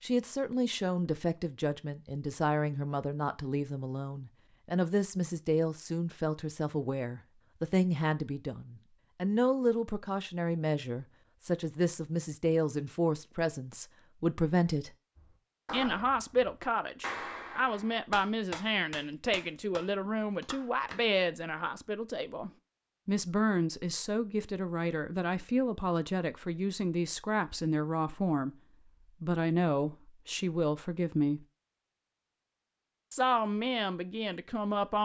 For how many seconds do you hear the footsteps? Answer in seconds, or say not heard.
not heard.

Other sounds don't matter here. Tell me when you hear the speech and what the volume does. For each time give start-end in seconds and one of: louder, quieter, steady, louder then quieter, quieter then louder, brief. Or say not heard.
0.0-14.9 steady
15.7-28.6 steady
29.2-31.4 brief
33.1-35.0 brief.